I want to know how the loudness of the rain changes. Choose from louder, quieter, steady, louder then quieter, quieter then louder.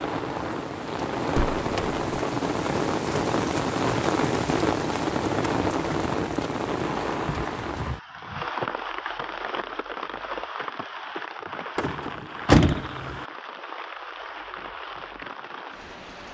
quieter.